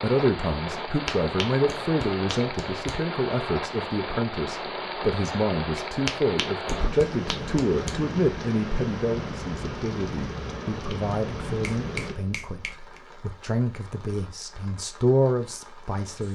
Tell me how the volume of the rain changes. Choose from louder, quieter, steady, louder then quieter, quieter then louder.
quieter.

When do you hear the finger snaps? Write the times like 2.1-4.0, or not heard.
1.1-3.0, 6.0-8.0, 11.6-13.0.